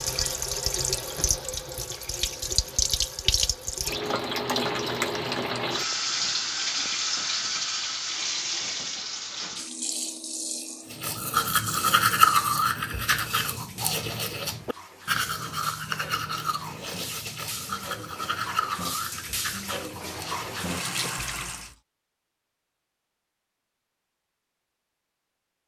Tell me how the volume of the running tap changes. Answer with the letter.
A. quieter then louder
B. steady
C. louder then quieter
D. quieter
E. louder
A.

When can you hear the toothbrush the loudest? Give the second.
12 s.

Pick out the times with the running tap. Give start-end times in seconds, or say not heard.
0.0-21.7.